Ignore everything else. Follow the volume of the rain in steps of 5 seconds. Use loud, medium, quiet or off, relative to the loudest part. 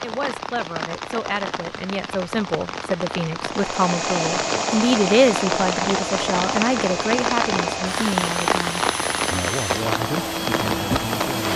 medium, loud, loud.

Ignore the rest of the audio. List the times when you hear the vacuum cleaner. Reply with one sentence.
You can hear the vacuum cleaner from 3.5 to 11.5 s.